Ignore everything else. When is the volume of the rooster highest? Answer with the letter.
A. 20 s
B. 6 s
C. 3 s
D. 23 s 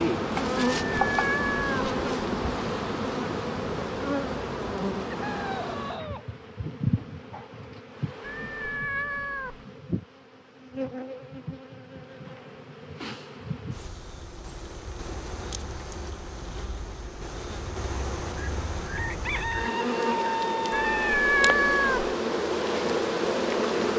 A.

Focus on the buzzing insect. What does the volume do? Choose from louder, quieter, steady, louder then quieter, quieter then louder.
quieter then louder.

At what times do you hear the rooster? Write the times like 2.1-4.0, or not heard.
5.1-6.2, 18.4-21.1.